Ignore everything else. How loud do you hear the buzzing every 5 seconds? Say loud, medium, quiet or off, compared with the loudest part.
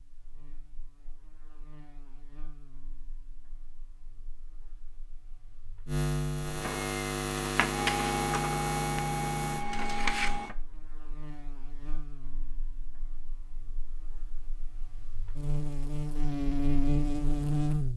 quiet, loud, quiet, loud.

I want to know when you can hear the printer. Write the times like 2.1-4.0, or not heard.
6.6-10.6.